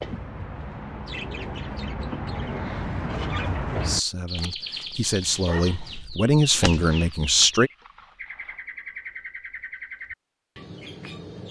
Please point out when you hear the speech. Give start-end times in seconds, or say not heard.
3.7-7.7.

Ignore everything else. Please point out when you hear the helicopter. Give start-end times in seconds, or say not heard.
not heard.